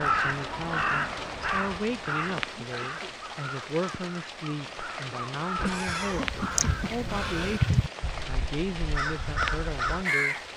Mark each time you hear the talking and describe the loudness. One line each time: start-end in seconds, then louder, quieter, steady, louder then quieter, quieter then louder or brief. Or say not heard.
0.0-10.3 steady.